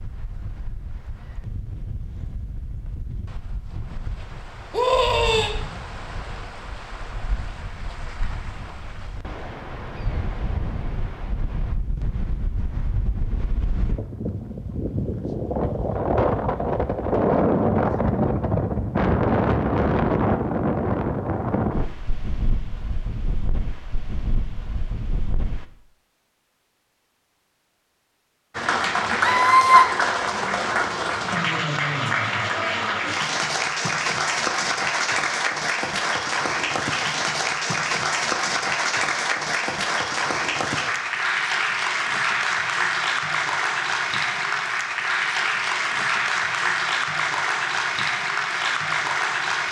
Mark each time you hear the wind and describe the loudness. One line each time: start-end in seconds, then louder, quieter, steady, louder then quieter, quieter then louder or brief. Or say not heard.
0.0-25.6 louder then quieter.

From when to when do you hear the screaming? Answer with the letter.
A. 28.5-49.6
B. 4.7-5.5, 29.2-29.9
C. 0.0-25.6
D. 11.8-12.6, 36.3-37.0
B.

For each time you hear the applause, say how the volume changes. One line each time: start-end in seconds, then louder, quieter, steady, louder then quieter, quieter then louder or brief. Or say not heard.
28.5-49.6 steady.